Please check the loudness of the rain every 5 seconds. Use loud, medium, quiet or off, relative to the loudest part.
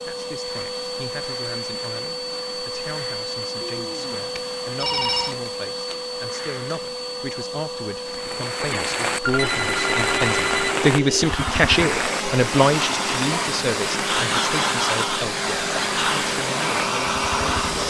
off, loud, loud, loud.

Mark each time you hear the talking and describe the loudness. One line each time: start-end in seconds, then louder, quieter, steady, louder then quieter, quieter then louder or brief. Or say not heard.
0.1-17.8 louder then quieter.